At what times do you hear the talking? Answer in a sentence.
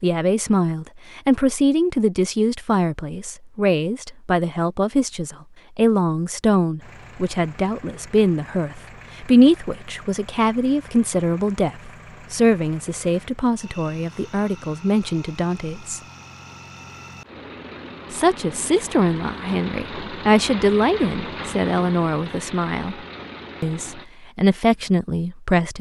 The talking can be heard from 0.0 to 16.0 s, from 18.1 to 22.9 s and from 23.6 to 25.7 s.